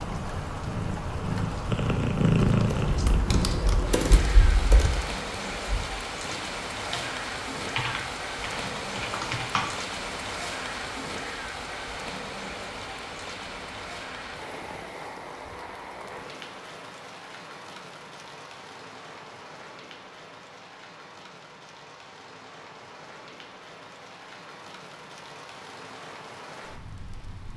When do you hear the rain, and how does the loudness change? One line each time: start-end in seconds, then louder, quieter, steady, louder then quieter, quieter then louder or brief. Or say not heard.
0.0-27.5 quieter.